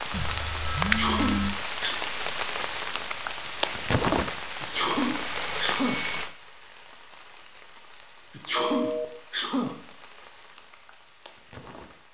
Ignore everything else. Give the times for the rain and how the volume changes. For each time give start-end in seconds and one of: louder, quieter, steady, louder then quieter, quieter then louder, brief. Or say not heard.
0.0-12.1 quieter.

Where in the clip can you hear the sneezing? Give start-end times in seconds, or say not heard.
0.8-1.9, 4.6-6.0, 8.3-9.8.